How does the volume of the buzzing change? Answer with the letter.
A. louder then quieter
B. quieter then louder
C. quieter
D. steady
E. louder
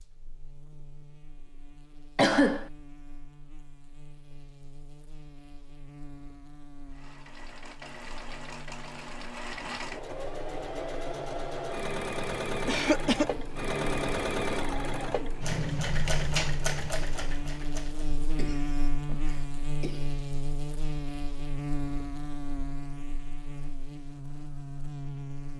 E.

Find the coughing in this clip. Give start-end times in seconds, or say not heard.
2.1-2.6, 12.7-13.2, 18.4-20.1.